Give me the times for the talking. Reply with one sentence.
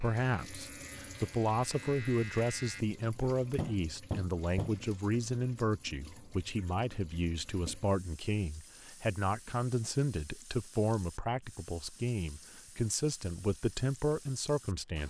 The talking can be heard from 0.0 to 15.0 s.